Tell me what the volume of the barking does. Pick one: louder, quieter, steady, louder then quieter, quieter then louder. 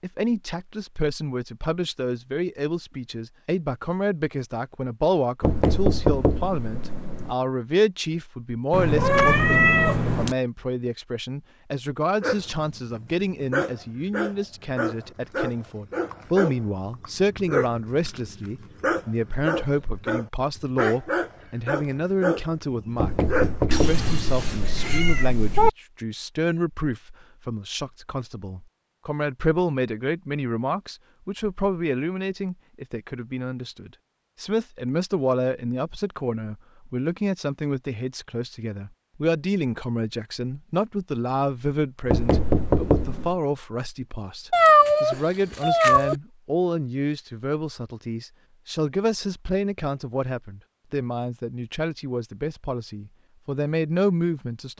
steady.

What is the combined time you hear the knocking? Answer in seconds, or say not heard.
5 s.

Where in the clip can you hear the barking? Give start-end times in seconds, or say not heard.
12.2-23.6.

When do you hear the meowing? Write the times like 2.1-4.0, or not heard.
8.7-10.3, 23.7-25.7, 44.5-46.1.